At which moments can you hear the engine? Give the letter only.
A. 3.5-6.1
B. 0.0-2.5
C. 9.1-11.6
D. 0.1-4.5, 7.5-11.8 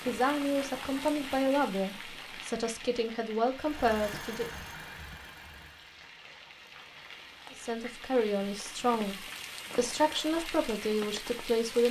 A.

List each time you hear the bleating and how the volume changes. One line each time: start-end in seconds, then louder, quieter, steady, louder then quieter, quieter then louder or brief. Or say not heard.
not heard.